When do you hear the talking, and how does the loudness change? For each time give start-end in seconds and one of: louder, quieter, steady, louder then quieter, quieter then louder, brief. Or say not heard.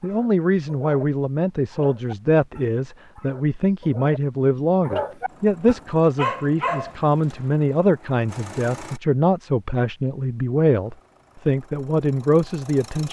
0.0-13.0 steady.